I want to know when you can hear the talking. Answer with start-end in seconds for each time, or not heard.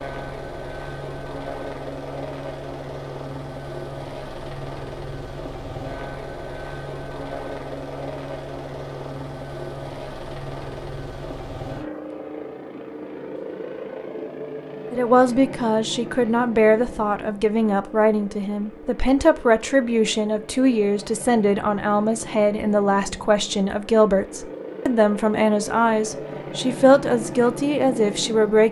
14.9-28.6.